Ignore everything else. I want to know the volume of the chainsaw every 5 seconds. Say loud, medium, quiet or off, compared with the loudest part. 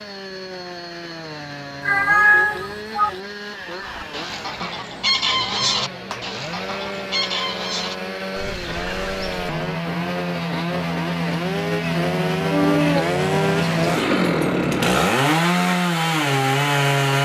quiet, medium, loud, loud.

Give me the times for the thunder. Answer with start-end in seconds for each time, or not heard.
not heard.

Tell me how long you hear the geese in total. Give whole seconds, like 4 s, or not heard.
6 s.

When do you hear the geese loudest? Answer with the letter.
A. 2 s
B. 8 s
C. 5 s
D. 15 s
C.